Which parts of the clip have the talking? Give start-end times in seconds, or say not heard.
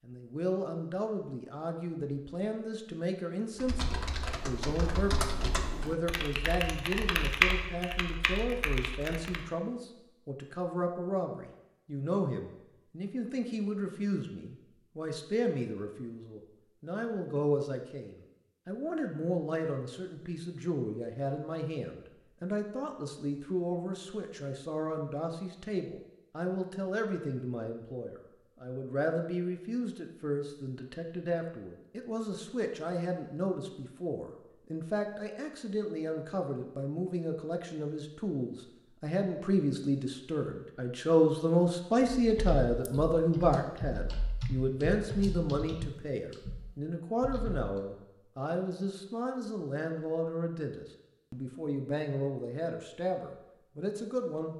0.1-54.5.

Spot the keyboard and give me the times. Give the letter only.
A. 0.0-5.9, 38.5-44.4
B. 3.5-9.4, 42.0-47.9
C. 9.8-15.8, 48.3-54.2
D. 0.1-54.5
B.